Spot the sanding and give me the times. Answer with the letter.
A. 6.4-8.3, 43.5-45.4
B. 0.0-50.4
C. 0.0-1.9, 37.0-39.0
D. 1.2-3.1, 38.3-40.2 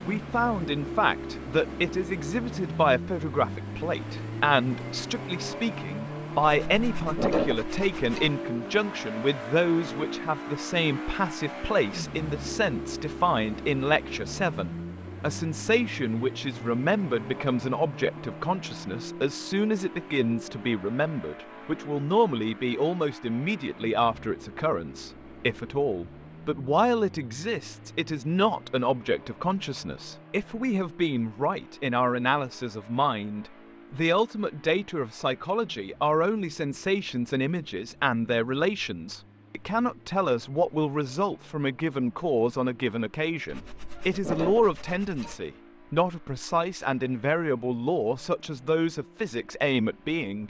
A.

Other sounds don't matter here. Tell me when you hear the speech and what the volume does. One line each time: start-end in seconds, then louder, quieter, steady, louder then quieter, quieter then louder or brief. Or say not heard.
0.0-50.4 steady.